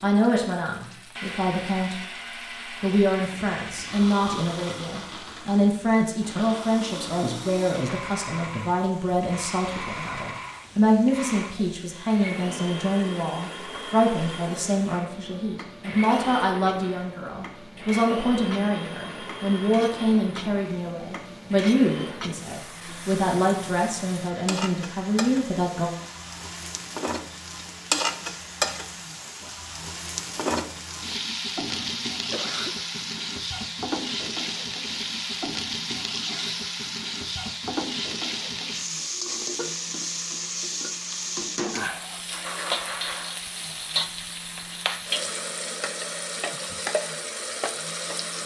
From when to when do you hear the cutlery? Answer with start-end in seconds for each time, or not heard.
not heard.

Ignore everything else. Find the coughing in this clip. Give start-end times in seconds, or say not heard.
31.6-32.8.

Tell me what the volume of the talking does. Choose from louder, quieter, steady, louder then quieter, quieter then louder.
steady.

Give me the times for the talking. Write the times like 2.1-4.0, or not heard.
0.0-25.9.